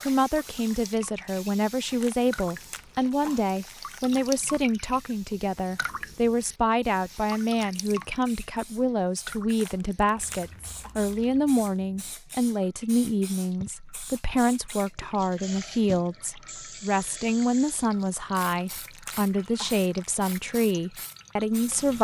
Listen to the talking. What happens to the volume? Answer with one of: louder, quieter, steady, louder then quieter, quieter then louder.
steady.